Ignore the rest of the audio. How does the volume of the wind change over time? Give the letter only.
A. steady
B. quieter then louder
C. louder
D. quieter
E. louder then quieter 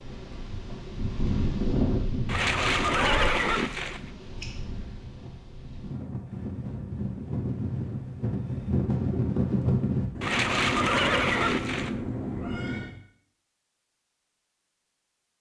B.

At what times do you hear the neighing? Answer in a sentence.
The neighing can be heard from 2.2 to 4.1 s and from 10.2 to 11.9 s.